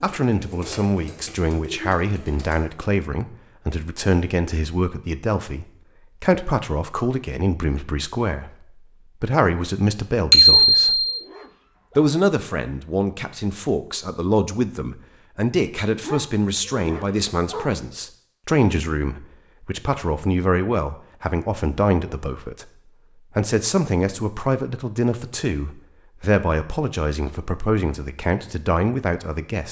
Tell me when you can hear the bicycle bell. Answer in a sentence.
The bicycle bell can be heard from 10.3 to 11.2 s.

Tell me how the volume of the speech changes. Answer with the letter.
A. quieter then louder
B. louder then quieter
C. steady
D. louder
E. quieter
C.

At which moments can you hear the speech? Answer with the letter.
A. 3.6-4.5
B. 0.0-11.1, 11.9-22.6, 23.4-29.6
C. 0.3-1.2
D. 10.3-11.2
B.